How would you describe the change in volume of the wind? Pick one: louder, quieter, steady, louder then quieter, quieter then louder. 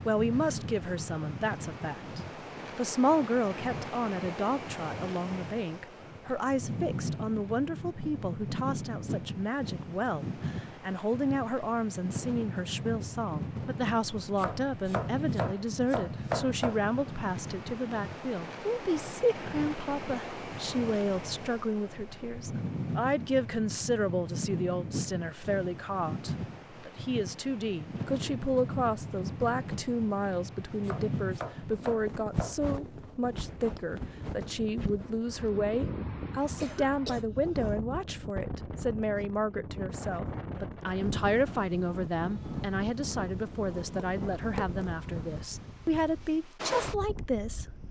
steady.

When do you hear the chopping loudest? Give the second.
16 s.